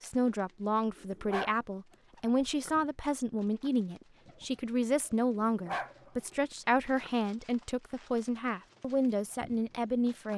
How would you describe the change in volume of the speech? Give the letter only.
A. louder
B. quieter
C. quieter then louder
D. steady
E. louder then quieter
D.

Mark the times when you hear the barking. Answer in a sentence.
You can hear the barking from 0.9 to 2.7 s, from 5.3 to 5.9 s and from 6.5 to 7.1 s.